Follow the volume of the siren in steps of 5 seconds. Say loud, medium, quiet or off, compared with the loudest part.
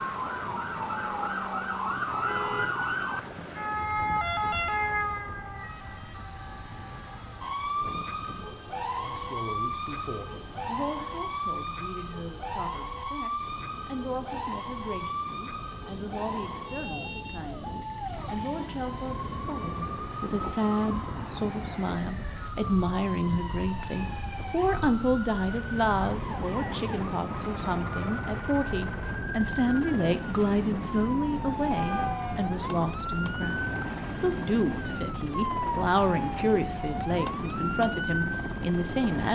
loud, medium, medium, medium, medium, medium, medium, loud.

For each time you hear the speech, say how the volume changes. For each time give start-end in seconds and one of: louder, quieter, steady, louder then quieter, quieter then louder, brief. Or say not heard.
8.9-39.3 louder.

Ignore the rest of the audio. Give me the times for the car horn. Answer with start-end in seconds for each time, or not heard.
2.2-2.8, 31.7-32.5.